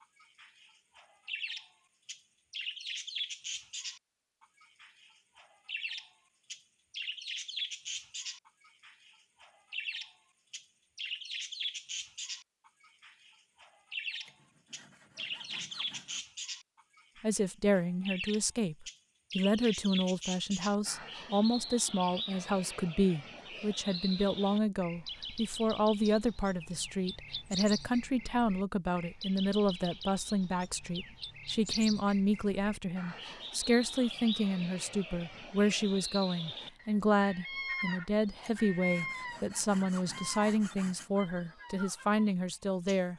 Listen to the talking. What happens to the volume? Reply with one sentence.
The loudness of the talking stays about the same.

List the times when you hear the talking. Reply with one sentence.
The talking can be heard from 17.2 to 43.1 s.